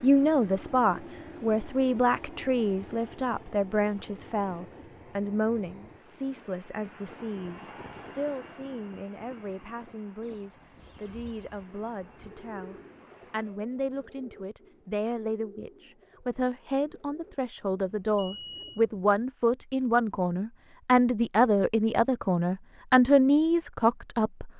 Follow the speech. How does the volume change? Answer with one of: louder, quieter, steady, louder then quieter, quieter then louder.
quieter then louder.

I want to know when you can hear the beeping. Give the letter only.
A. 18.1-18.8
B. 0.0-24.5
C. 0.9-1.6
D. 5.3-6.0
A.